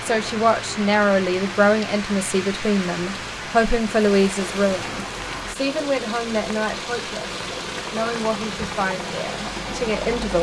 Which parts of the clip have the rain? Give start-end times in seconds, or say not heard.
0.0-10.3.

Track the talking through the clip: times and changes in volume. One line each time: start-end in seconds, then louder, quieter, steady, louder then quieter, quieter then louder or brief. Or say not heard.
0.0-10.3 quieter.